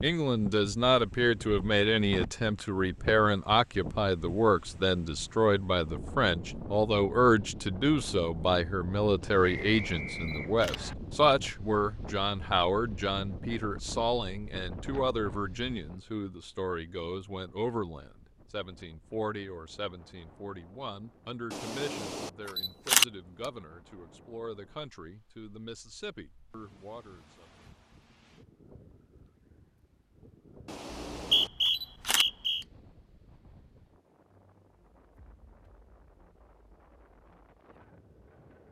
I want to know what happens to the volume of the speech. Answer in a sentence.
The volume of the speech goes down.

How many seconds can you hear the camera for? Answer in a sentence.
The camera can be heard for 5 seconds in total.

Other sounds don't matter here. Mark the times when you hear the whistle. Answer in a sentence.
The whistle can be heard from 9.7 to 10.9 s and from 30.9 to 32.6 s.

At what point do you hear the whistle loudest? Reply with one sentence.
The volume of the whistle peaks at 31 seconds.